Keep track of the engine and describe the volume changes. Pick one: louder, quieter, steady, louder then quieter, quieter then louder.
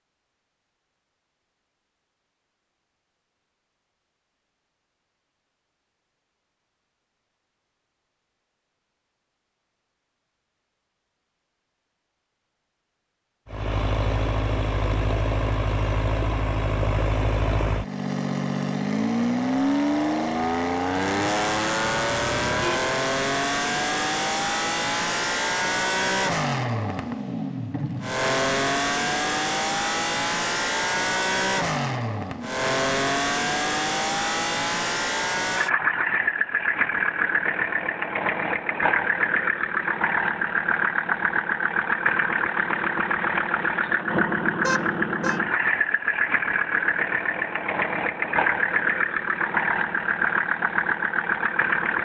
steady.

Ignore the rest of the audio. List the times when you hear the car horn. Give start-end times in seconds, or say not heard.
21.9-22.9, 44.6-45.4.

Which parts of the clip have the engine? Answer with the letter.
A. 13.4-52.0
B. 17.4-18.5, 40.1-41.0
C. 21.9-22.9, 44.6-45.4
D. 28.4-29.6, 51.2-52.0
A.